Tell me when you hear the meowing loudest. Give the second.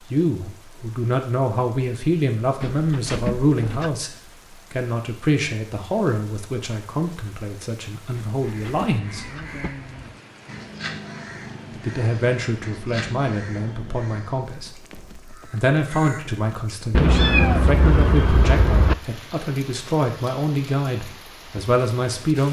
17 s.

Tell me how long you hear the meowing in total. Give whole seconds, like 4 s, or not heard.
5 s.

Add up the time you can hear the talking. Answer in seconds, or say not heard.
20 s.